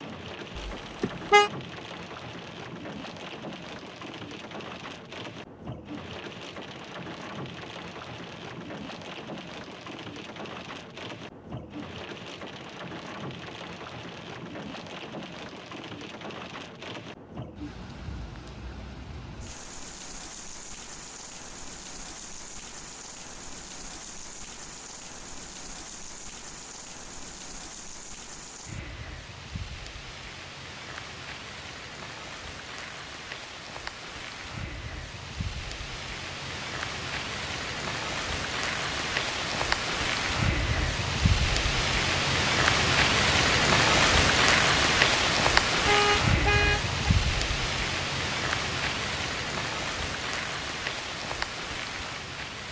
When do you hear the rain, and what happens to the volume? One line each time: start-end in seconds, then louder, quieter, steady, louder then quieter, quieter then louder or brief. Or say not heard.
0.0-52.6 louder.